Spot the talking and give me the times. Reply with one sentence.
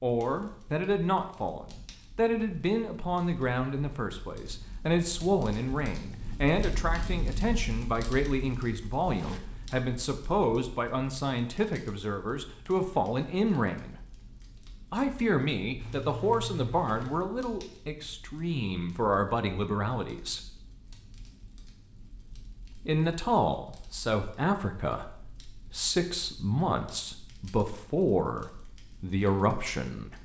You can hear the talking from 0.0 to 13.9 s, from 14.9 to 20.4 s and from 22.7 to 30.1 s.